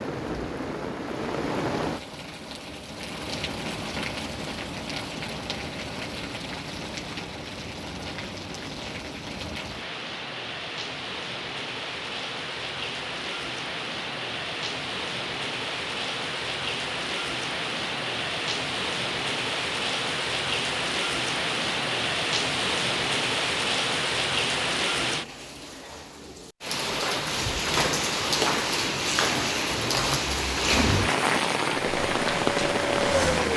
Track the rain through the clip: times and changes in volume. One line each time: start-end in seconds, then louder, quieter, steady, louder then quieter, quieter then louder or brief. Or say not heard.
0.0-33.5 louder.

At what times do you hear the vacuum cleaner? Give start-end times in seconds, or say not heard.
31.8-33.5.